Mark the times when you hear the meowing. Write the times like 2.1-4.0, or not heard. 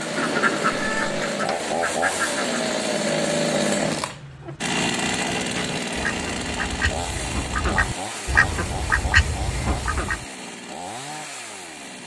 0.7-1.2.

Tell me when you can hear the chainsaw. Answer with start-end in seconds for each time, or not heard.
0.0-12.0.